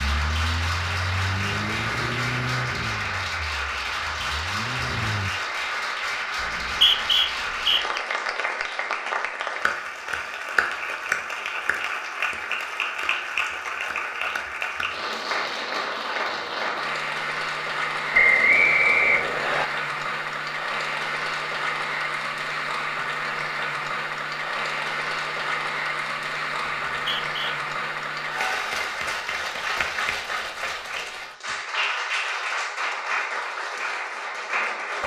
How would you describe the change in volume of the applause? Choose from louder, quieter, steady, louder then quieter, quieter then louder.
steady.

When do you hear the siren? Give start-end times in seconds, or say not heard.
not heard.